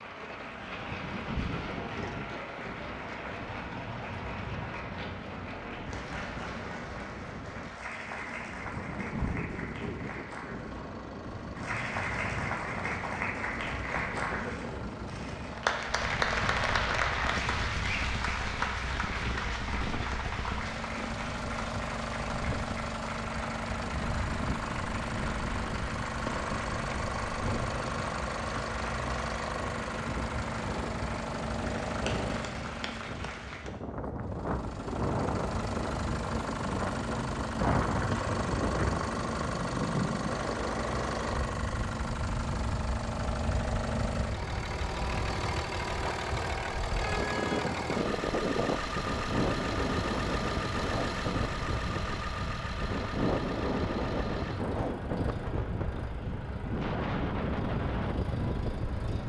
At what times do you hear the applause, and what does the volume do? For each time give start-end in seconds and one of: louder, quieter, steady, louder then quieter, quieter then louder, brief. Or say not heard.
0.0-33.8 louder then quieter.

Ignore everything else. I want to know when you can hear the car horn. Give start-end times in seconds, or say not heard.
47.0-47.6.